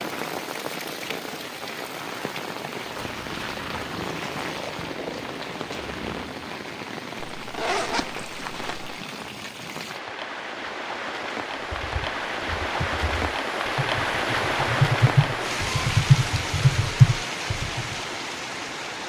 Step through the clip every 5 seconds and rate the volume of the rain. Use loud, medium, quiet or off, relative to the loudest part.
medium, medium, loud, loud.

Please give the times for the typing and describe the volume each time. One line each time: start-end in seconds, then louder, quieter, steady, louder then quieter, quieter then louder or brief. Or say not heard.
11.6-17.9 louder.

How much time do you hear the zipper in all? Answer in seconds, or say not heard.
2 s.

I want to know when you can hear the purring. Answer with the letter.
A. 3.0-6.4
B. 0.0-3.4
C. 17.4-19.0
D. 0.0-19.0
A.